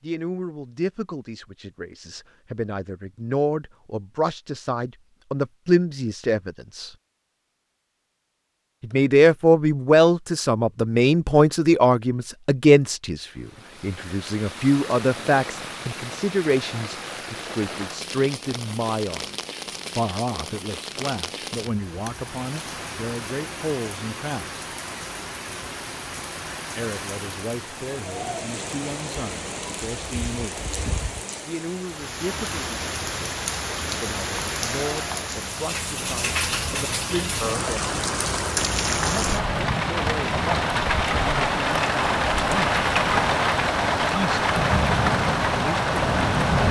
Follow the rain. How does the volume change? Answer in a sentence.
The volume of the rain goes up.